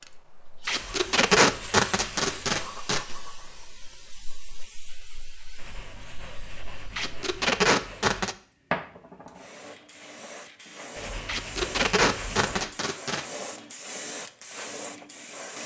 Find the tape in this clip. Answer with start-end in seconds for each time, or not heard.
0.7-3.0, 7.0-8.3, 11.2-13.2.